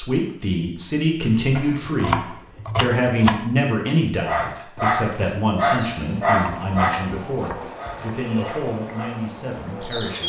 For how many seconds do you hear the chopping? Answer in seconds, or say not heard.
4 s.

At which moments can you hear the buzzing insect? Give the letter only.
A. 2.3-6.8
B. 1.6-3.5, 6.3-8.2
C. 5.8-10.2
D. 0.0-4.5
C.